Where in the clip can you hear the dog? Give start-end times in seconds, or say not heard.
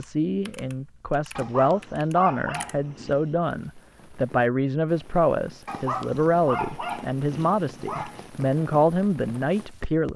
1.4-3.4, 5.7-8.3.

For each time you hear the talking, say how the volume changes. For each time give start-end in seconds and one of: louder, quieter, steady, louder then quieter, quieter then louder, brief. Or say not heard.
0.0-10.1 steady.